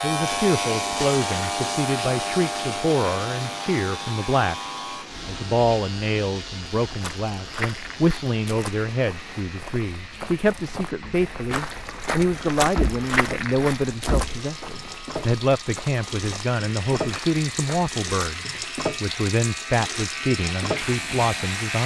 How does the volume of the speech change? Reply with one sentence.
The loudness of the speech stays about the same.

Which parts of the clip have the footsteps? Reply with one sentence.
The footsteps can be heard from 6.8 to 18.4 s.